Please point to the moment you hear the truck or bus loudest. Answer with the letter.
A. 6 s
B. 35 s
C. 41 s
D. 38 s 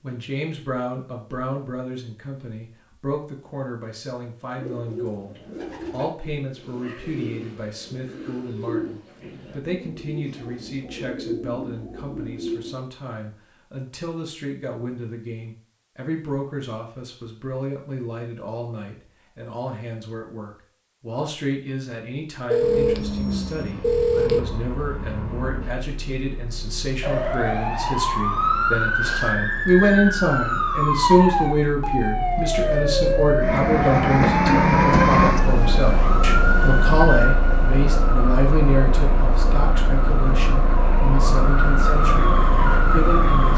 B.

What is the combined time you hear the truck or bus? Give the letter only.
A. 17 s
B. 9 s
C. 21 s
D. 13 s
C.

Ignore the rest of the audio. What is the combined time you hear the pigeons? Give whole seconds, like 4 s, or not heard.
8 s.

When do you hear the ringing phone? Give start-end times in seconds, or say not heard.
22.5-24.4.